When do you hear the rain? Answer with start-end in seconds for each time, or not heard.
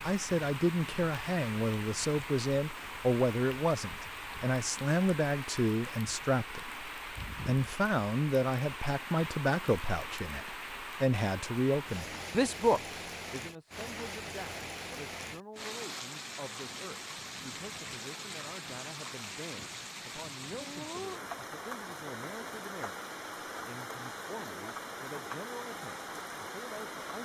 0.0-27.1.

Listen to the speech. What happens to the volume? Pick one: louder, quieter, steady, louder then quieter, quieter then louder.
quieter.